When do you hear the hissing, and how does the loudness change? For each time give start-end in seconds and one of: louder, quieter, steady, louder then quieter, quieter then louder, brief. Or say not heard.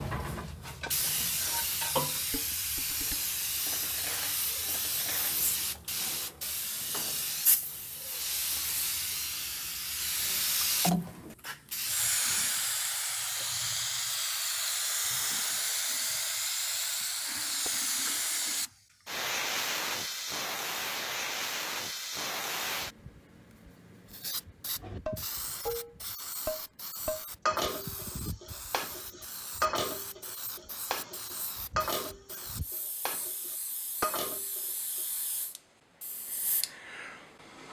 0.0-37.6 quieter.